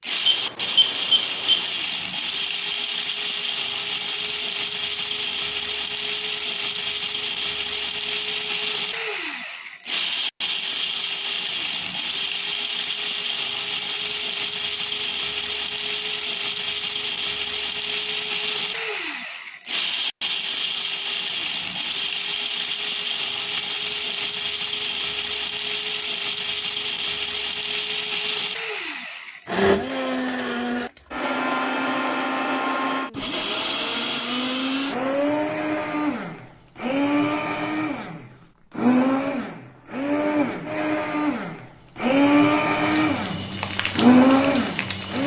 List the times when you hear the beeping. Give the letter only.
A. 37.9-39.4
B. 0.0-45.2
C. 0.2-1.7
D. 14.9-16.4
C.